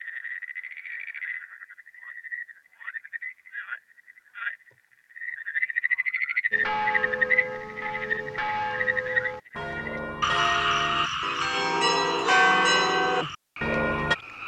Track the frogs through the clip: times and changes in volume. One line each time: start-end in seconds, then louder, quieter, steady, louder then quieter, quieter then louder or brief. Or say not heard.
0.0-14.4 louder then quieter.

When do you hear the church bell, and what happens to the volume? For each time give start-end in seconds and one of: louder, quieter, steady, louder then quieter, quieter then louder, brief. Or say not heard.
6.5-14.2 louder.